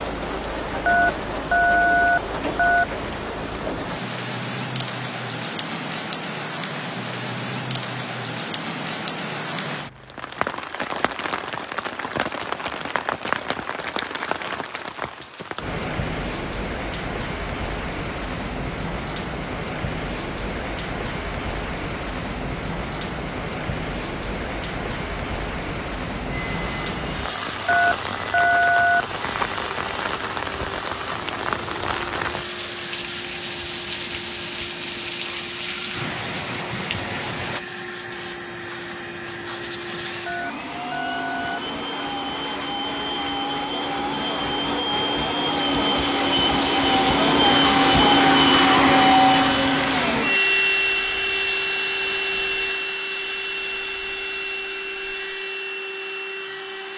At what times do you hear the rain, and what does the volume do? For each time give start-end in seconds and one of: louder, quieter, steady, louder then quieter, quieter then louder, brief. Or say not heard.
0.0-37.6 steady.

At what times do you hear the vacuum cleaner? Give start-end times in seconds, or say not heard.
26.2-56.9.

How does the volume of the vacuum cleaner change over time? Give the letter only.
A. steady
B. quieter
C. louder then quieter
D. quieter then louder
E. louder
C.